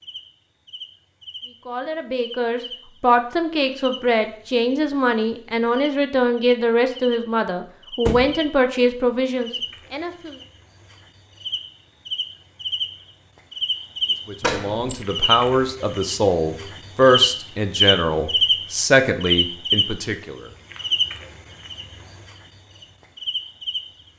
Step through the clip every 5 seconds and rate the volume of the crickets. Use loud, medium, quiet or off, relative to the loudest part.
quiet, quiet, medium, loud, medium.